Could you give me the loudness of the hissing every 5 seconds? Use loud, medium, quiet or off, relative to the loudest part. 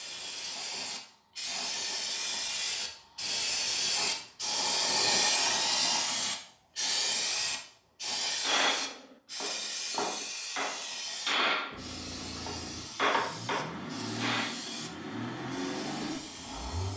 loud, loud, medium, quiet.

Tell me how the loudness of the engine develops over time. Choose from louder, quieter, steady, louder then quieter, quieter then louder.
louder.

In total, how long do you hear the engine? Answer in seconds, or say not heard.
5 s.